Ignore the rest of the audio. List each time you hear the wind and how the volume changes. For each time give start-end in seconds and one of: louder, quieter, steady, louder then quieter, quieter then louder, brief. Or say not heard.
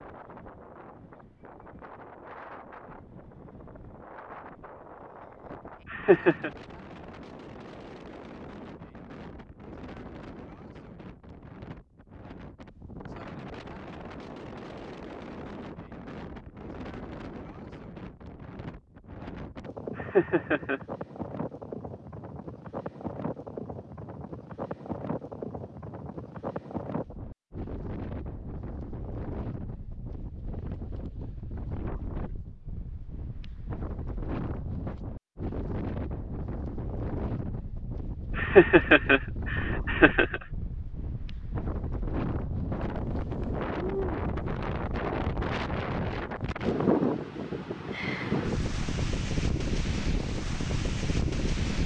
0.0-51.8 louder.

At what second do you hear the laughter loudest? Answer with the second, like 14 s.
39 s.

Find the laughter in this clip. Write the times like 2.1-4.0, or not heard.
5.9-6.5, 19.9-20.8, 38.4-40.4.